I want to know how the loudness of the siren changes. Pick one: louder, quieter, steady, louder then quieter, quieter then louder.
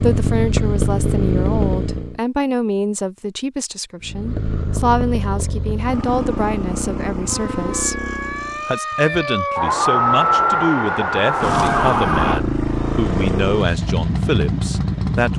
louder.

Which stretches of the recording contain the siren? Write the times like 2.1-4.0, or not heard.
7.2-12.4.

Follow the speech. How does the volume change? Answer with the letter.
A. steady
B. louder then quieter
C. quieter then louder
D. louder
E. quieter
A.